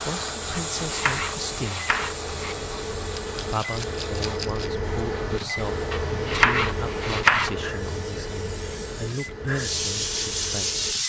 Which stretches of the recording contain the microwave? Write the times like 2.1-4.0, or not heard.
0.0-11.0.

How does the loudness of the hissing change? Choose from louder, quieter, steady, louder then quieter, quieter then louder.
quieter then louder.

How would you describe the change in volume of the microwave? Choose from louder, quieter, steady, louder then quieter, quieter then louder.
louder then quieter.